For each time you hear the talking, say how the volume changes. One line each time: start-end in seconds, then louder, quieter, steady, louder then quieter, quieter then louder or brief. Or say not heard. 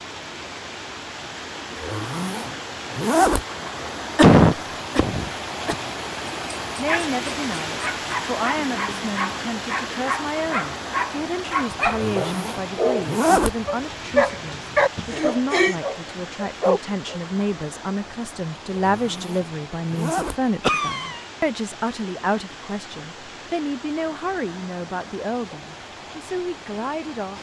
6.8-27.3 steady.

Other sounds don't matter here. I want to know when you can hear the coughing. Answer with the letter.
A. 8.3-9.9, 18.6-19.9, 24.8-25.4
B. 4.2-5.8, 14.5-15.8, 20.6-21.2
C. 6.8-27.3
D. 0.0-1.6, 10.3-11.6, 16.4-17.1
B.